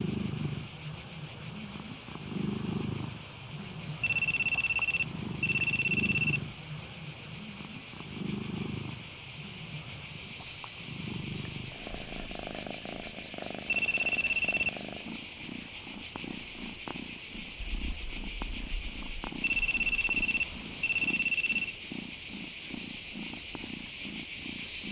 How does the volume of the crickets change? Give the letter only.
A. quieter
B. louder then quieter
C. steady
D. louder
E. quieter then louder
D.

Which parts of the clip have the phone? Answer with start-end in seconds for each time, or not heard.
4.0-6.4, 13.7-14.7, 19.4-21.8.